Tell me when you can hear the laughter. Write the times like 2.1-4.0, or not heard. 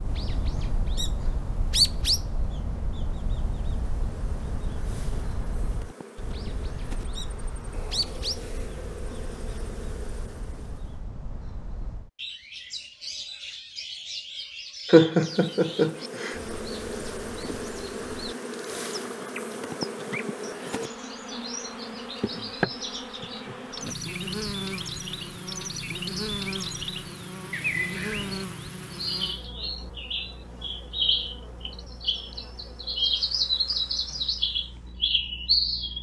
14.9-16.4.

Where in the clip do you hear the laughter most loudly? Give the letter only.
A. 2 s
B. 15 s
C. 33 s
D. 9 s
B.